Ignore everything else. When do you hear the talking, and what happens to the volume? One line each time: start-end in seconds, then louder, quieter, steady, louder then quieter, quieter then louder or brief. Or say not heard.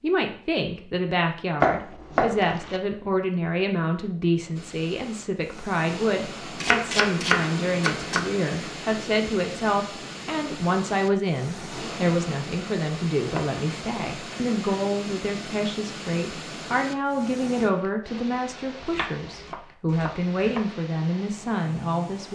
0.0-22.3 steady.